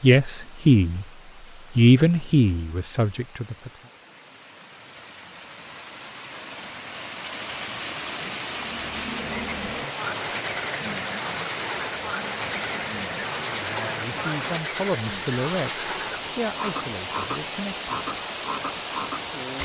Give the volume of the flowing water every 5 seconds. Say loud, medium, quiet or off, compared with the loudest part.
quiet, loud, loud, loud.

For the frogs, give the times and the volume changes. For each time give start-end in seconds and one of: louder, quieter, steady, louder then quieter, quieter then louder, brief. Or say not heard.
8.5-19.6 steady.